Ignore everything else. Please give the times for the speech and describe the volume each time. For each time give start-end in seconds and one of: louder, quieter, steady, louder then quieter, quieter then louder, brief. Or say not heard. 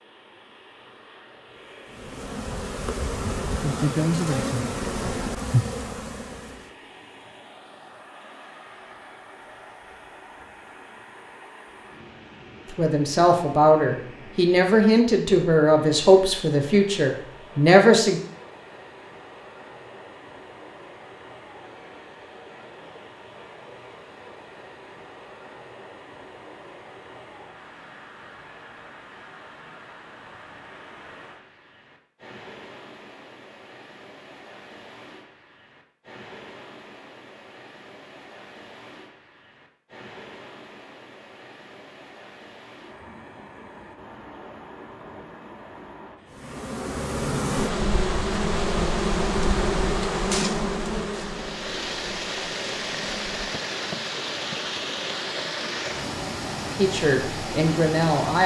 12.8-18.2 steady
56.8-58.4 brief.